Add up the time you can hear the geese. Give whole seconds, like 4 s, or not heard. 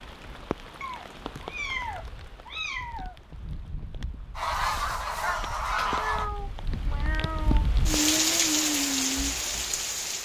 2 s.